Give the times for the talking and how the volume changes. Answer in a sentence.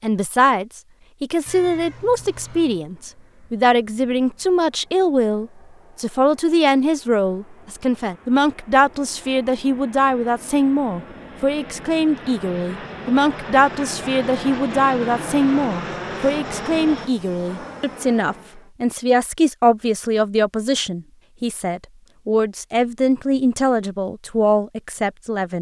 You can hear the talking from 0.0 to 25.5 s, at a steady volume.